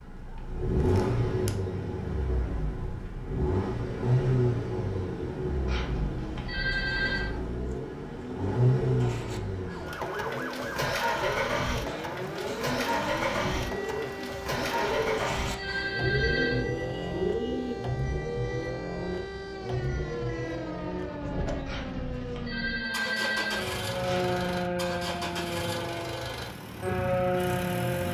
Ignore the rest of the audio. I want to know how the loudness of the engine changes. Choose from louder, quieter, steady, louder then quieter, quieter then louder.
quieter.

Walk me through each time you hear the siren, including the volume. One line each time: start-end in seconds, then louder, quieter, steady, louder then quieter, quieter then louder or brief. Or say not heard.
9.6-28.1 louder.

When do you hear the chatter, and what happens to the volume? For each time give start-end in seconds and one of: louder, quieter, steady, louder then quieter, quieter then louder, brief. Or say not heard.
not heard.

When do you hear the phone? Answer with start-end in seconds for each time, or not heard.
5.7-7.3, 14.8-16.7, 21.6-24.3.